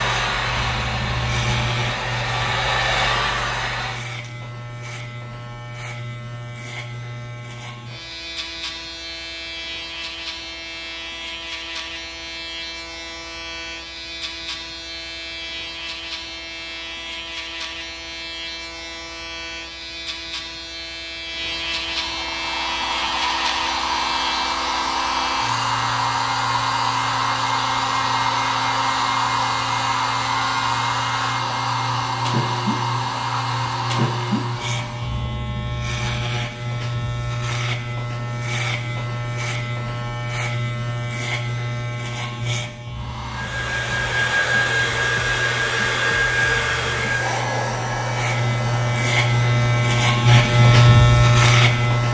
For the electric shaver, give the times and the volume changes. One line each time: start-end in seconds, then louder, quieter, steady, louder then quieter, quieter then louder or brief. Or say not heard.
0.0-52.0 louder.